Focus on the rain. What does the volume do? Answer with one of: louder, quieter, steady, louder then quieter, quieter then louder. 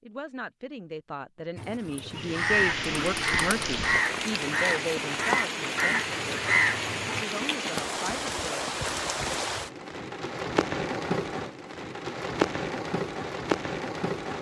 steady.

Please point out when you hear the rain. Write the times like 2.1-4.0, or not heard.
2.1-14.3.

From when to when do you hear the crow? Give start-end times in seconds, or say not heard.
1.6-7.2.